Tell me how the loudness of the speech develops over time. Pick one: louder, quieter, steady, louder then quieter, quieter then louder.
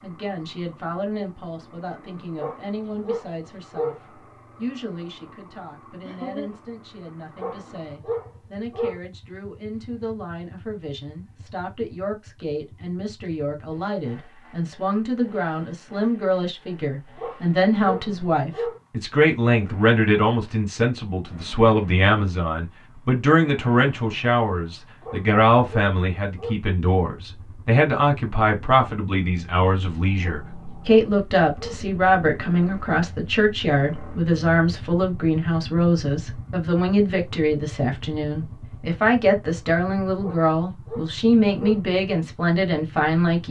louder.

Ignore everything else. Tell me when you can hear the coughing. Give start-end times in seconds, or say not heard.
6.0-6.5.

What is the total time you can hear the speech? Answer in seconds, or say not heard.
43 s.